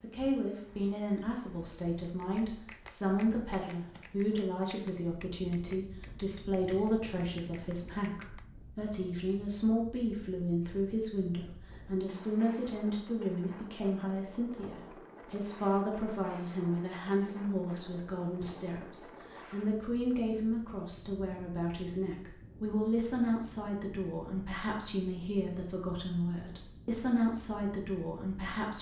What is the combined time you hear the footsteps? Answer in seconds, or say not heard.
not heard.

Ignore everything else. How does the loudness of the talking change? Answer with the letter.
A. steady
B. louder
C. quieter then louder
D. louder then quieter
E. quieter
A.